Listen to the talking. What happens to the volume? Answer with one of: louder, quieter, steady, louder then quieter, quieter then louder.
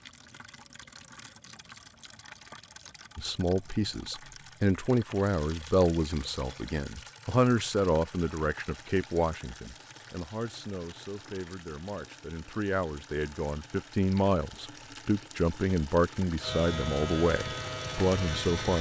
quieter then louder.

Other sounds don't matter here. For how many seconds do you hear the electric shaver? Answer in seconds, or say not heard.
2 s.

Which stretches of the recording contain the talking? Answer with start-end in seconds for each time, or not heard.
3.1-18.7.